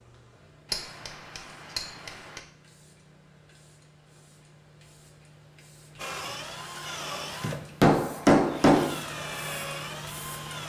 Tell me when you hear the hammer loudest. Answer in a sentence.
The loudest moment of the hammer is at 8 seconds.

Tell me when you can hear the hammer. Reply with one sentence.
You can hear the hammer from 0.7 to 2.4 s and from 7.4 to 8.9 s.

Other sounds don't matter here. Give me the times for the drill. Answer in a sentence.
The drill can be heard from 6.0 to 10.6 s.